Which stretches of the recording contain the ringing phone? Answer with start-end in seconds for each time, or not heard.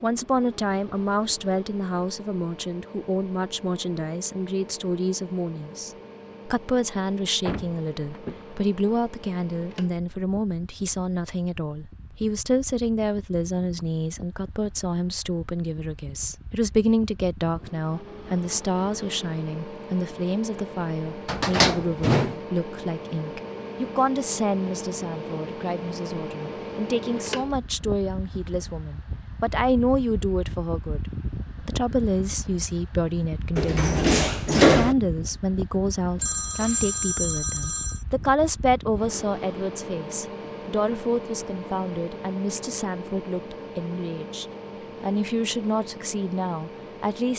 36.2-38.0.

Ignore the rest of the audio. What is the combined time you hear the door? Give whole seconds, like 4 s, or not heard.
4 s.